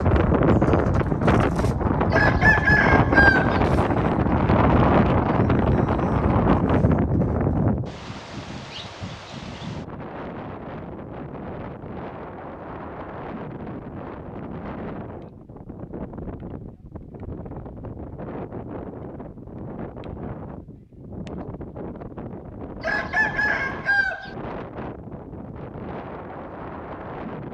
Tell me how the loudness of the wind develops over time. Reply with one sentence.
The loudness of the wind goes down.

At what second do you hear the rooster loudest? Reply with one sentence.
The loudest moment of the rooster is at 3 seconds.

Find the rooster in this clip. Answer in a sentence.
The rooster can be heard from 2.1 to 3.6 s and from 22.8 to 24.4 s.